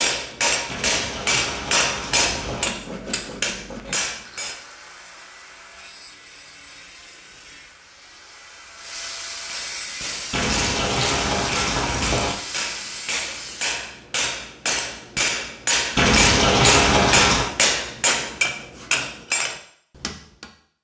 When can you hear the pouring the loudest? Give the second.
17 s.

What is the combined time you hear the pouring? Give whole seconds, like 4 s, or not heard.
6 s.